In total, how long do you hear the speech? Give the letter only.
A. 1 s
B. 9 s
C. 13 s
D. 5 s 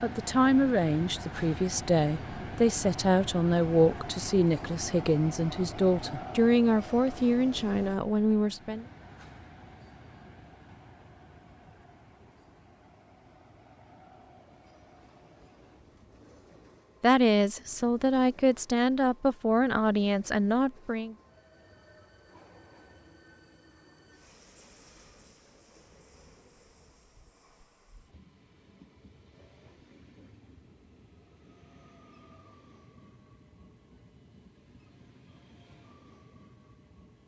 C.